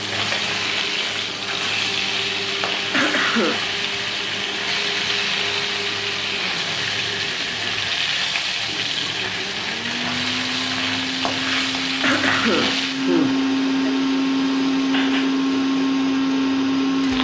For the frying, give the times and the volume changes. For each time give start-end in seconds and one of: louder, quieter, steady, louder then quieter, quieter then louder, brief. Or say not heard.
0.0-17.1 quieter.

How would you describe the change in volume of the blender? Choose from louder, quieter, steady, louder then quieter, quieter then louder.
louder.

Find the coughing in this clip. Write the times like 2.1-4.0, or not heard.
2.9-3.6, 12.0-13.9.